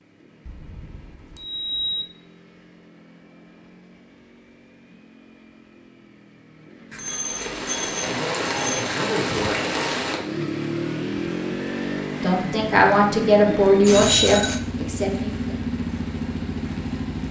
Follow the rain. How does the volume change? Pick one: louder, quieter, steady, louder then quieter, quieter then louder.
quieter.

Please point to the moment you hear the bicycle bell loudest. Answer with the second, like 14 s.
14 s.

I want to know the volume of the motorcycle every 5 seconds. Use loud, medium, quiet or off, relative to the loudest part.
quiet, quiet, loud, loud.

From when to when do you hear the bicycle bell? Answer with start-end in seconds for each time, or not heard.
0.5-2.0, 6.9-8.8, 13.7-14.6.